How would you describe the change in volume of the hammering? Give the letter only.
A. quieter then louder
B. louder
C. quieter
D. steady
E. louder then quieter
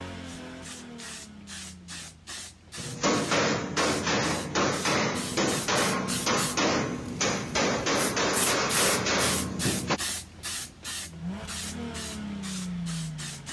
D.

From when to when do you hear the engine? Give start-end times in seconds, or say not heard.
0.0-2.3, 11.1-13.4.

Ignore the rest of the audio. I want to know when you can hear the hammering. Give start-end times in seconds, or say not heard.
2.8-10.0.